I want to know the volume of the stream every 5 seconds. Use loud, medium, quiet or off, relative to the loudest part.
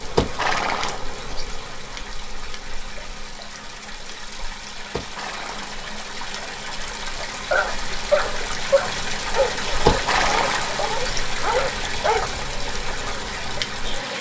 medium, loud, loud.